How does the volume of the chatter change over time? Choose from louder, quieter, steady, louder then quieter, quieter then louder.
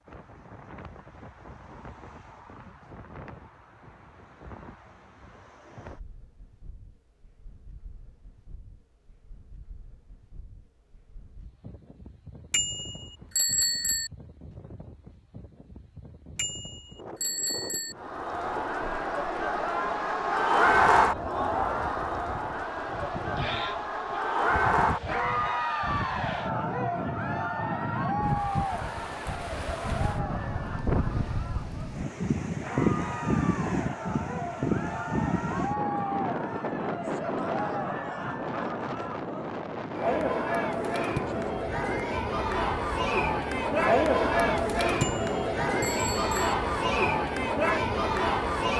quieter then louder.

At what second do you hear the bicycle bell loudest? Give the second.
14 s.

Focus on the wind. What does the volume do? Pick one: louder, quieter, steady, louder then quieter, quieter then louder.
louder.